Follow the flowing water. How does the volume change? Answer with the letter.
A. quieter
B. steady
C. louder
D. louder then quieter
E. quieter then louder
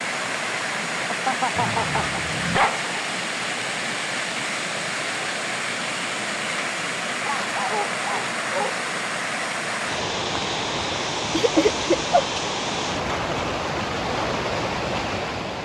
B.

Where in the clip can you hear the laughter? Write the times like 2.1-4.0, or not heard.
1.1-2.2, 11.3-11.9.